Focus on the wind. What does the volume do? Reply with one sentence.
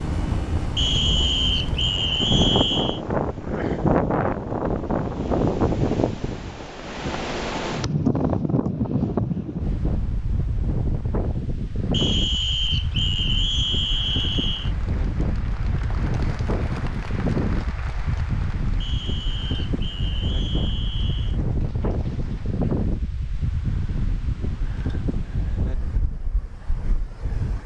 The loudness of the wind goes down.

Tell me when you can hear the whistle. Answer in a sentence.
The whistle can be heard from 0.8 to 3.0 s, from 11.9 to 14.7 s and from 18.8 to 21.4 s.